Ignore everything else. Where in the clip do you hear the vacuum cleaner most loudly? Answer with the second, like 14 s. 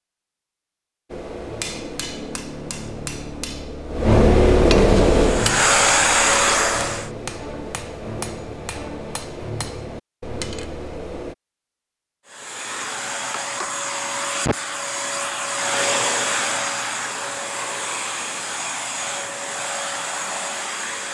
6 s.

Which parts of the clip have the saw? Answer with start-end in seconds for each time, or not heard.
not heard.